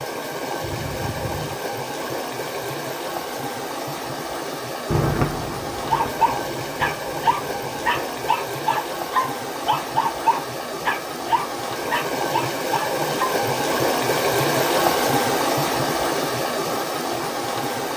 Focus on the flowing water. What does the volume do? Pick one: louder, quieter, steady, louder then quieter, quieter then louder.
louder.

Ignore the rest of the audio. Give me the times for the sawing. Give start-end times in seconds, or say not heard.
not heard.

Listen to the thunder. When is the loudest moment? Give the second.
5 s.